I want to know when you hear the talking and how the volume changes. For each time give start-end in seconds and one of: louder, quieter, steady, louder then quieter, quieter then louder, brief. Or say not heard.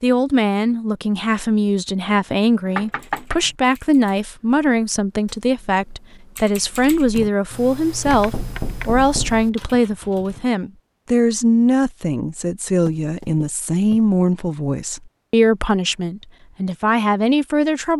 0.0-17.9 steady.